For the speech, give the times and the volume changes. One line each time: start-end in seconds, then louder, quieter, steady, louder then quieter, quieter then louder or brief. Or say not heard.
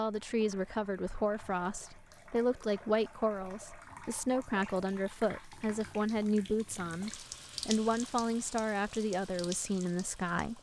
0.0-10.5 steady.